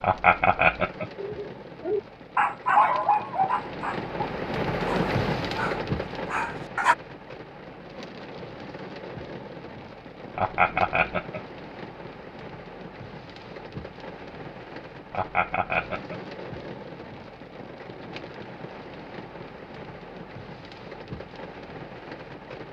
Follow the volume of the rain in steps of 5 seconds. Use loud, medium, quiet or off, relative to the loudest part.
loud, loud, medium, medium, medium.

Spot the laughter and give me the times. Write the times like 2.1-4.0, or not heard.
0.0-1.1, 10.3-11.4, 15.1-16.2.